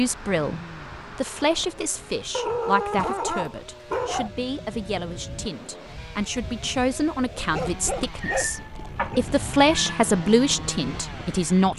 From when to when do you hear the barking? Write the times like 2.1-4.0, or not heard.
2.3-4.3, 7.5-9.0.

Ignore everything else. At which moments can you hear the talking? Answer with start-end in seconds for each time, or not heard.
0.0-11.7.